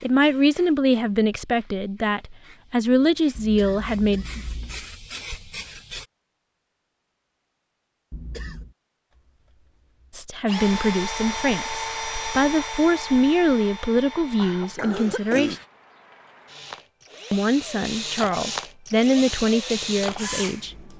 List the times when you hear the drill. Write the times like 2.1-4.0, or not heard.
10.3-20.9.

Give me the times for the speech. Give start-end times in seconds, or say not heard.
0.0-4.2, 10.1-15.6, 17.3-20.8.